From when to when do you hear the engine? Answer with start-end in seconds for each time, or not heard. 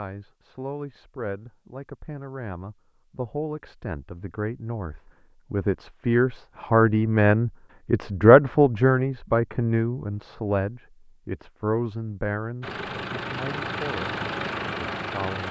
12.6-15.4.